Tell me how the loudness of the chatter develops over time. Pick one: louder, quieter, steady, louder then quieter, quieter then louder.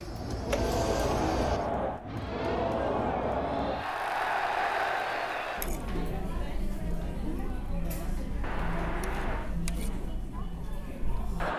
quieter.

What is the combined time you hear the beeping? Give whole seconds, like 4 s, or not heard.
2 s.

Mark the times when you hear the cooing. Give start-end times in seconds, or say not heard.
0.0-1.7.